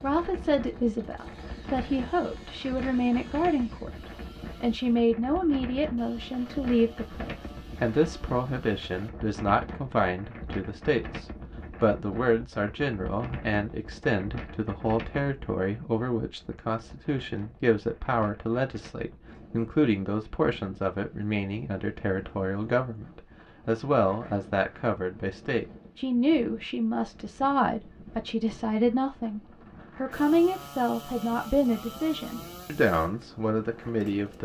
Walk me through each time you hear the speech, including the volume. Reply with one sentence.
The speech can be heard from 0.0 to 34.3 s, at a steady volume.